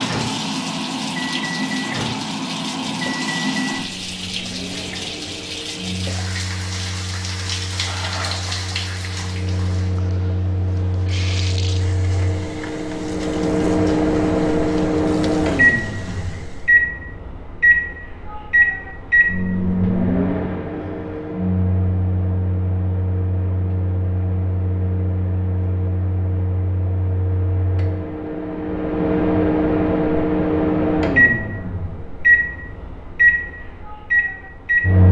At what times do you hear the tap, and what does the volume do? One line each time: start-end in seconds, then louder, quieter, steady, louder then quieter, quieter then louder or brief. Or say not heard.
0.0-16.8 quieter.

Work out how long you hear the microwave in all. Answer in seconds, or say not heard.
35 s.